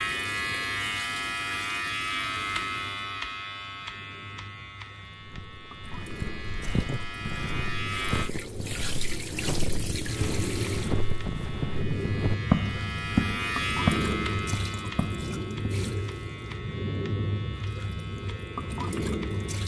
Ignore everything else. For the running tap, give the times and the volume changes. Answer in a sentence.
The running tap can be heard from 0.0 to 19.6 s, getting louder.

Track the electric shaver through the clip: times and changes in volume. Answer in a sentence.
The electric shaver can be heard from 0.0 to 8.3 s, getting quieter then louder; and from 10.1 to 19.6 s, getting louder then quieter.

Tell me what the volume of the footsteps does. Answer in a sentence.
The volume of the footsteps goes up.